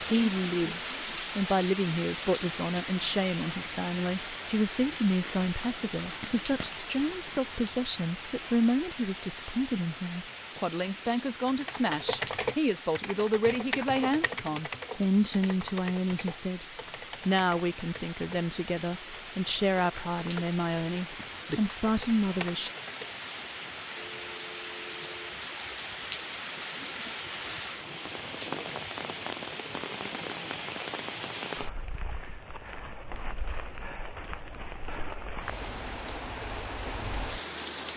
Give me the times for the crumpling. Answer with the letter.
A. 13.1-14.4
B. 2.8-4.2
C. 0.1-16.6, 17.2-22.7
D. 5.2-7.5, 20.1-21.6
D.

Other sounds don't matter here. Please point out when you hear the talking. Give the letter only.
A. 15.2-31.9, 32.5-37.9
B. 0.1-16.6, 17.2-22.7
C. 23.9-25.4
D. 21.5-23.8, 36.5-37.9
B.